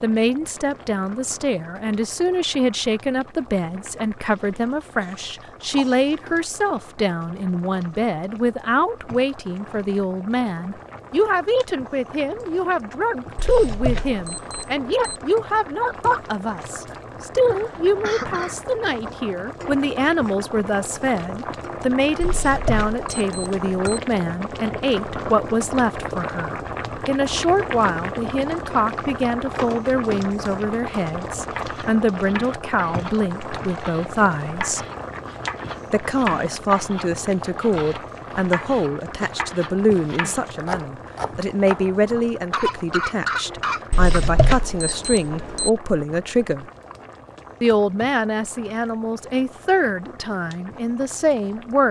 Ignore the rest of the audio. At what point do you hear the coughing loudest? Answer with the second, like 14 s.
43 s.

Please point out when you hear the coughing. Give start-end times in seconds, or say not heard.
5.8-6.2, 17.5-18.6, 42.5-44.2.